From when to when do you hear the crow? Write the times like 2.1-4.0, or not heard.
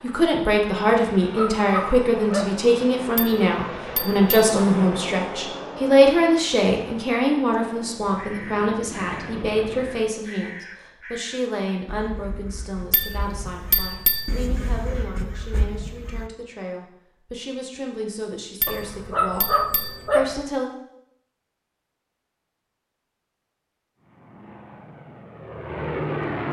8.2-16.3.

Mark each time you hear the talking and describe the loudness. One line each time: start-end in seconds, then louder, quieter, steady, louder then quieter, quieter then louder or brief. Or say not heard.
0.0-19.4 quieter
20.1-20.7 brief.